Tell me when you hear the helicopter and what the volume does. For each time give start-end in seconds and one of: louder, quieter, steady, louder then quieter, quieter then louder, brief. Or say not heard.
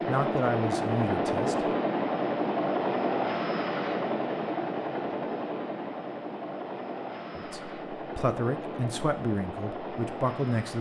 0.0-10.7 quieter.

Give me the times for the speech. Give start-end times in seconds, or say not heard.
0.1-1.7, 7.3-10.7.